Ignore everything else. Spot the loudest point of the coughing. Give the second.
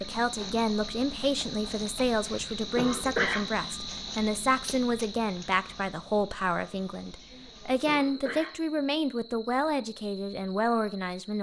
3 s.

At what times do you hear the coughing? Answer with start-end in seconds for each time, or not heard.
2.2-3.5, 7.3-8.8.